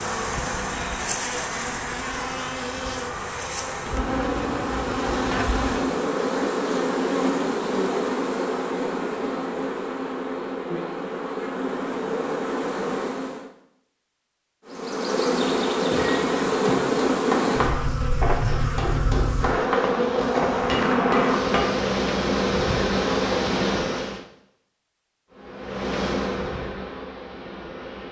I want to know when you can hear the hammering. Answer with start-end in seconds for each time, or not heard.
15.9-21.7.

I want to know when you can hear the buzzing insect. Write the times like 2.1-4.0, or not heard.
0.0-13.5, 14.7-24.2, 25.3-28.0.